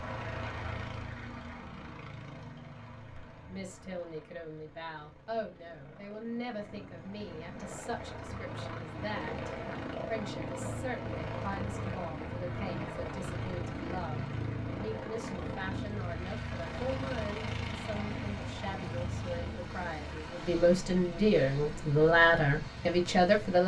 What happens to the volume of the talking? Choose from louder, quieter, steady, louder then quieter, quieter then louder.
louder.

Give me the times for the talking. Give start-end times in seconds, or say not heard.
3.0-23.6.